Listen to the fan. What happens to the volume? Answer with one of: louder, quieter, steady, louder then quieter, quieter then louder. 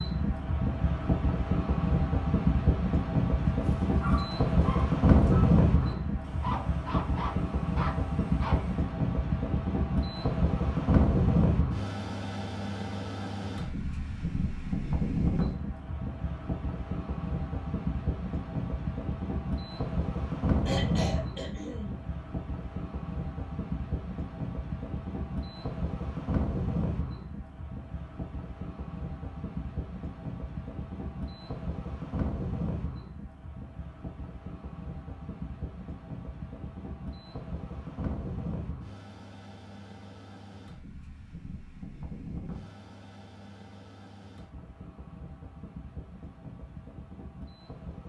quieter.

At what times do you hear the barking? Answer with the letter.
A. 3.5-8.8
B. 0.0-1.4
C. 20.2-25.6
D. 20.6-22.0
A.